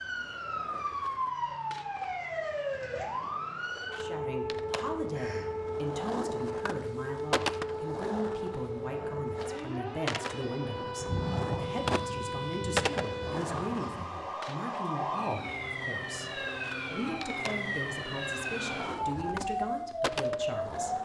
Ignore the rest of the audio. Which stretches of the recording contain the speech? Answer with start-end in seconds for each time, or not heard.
4.0-20.9.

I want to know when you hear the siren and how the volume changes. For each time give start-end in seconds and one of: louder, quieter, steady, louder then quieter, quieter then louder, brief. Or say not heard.
0.0-21.0 steady.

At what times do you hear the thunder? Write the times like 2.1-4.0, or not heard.
10.9-14.1.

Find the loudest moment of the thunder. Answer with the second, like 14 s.
11 s.